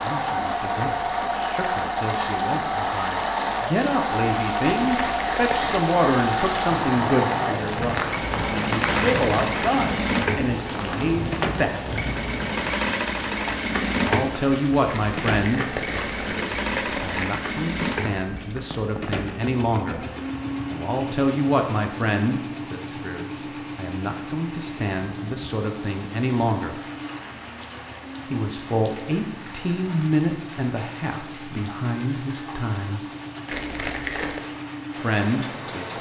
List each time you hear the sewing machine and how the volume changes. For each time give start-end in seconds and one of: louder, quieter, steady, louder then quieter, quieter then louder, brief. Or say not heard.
0.0-35.9 quieter.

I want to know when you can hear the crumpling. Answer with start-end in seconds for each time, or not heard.
4.8-5.9, 14.8-17.3, 33.5-34.4.